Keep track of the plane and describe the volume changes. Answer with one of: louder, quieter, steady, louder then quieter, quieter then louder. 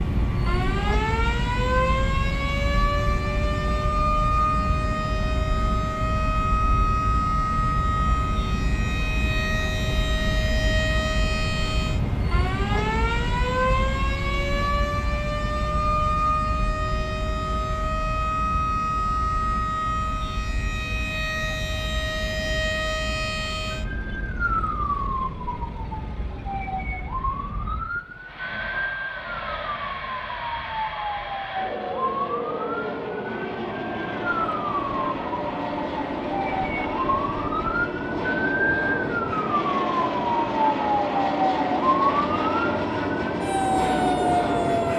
quieter then louder.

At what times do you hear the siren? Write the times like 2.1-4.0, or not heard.
0.0-44.9.